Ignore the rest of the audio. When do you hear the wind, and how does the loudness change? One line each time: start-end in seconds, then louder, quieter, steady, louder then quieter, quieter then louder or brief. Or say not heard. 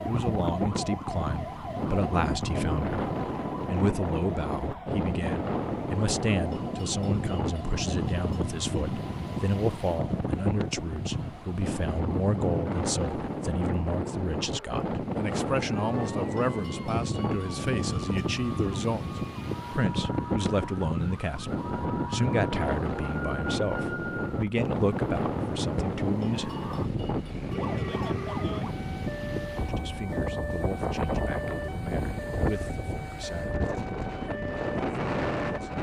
0.0-35.7 steady.